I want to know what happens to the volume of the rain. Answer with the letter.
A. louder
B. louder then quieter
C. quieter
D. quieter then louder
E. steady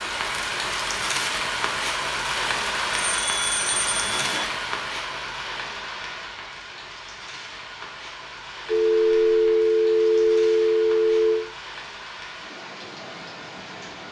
C.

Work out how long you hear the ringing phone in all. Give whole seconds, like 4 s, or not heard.
4 s.